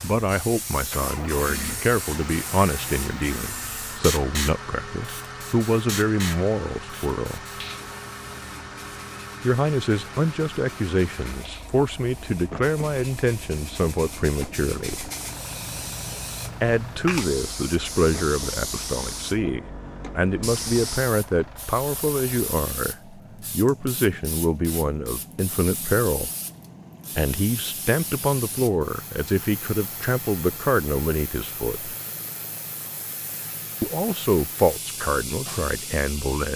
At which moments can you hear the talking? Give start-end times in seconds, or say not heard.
0.0-7.4, 9.4-15.1, 16.6-26.3, 27.1-31.9, 33.8-36.5.